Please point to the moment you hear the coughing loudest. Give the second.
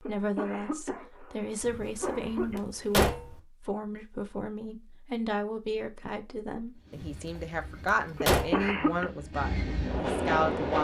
9 s.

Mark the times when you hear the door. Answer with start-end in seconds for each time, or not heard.
1.6-3.4, 6.9-8.7.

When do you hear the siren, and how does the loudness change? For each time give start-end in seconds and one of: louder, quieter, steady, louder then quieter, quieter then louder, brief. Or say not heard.
not heard.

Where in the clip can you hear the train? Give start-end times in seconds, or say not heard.
6.8-10.7.